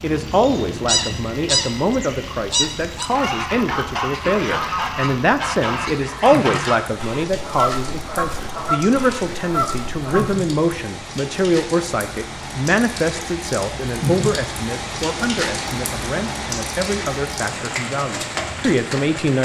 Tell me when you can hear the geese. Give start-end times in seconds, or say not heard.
0.2-10.4.